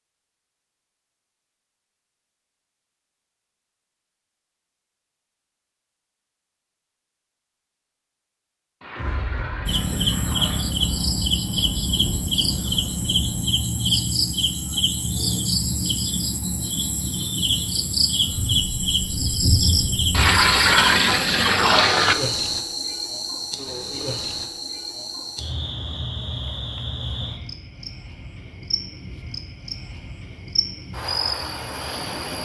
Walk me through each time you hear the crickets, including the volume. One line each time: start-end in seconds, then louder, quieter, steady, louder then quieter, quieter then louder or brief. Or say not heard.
9.7-32.3 quieter.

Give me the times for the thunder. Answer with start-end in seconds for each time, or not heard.
8.9-13.4, 18.2-20.4.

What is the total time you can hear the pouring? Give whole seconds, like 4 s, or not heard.
4 s.